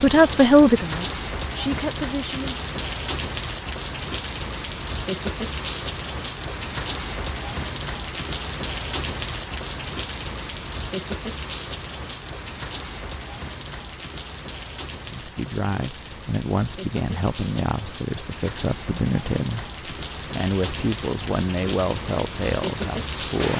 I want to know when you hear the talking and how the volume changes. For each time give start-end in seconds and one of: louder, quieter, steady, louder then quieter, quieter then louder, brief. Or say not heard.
0.0-2.6 brief
15.1-23.5 steady.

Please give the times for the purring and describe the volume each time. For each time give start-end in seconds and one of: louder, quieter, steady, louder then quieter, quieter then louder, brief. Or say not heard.
not heard.